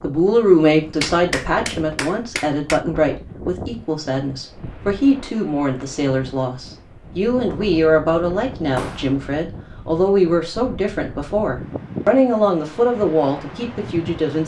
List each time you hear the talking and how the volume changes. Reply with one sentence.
You can hear the talking from 0.0 to 14.4 s, at a steady volume.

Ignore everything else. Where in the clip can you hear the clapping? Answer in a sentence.
You can hear the clapping from 1.0 to 2.8 s and from 8.8 to 9.2 s.